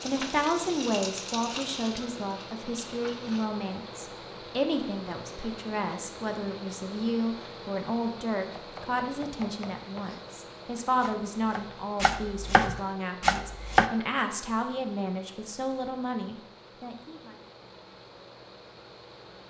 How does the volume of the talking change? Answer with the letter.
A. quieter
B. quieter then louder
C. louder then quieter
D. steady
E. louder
D.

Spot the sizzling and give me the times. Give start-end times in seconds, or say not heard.
0.0-3.5.